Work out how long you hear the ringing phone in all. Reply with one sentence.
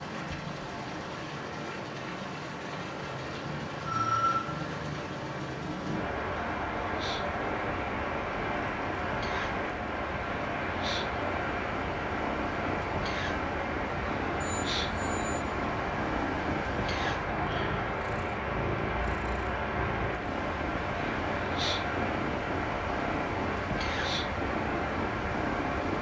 The ringing phone can be heard for 2 seconds in total.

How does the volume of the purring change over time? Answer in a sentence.
The loudness of the purring goes up.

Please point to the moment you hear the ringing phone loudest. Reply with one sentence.
The volume of the ringing phone peaks at 4 seconds.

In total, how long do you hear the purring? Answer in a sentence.
You can hear the purring for 26 seconds altogether.